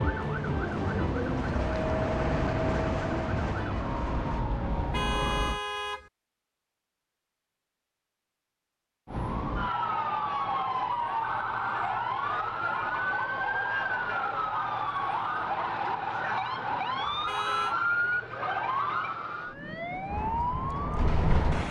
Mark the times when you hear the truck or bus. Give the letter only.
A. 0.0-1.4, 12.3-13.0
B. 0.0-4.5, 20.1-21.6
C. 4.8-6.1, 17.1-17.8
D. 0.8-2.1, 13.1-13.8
B.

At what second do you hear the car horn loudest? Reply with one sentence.
The volume of the car horn peaks at 5 seconds.